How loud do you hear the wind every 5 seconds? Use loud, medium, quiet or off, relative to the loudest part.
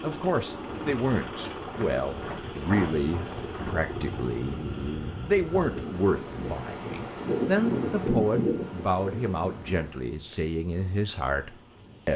medium, loud, off.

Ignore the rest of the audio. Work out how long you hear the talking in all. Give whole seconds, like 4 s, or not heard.
12 s.